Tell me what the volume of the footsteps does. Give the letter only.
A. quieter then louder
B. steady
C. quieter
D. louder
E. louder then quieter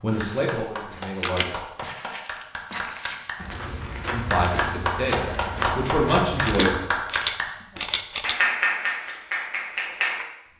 D.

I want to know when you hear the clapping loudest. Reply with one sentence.
The volume of the clapping peaks at 9 seconds.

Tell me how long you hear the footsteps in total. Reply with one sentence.
The footsteps can be heard for 7 seconds in total.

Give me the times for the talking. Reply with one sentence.
You can hear the talking from 0.0 to 1.5 s and from 4.1 to 6.7 s.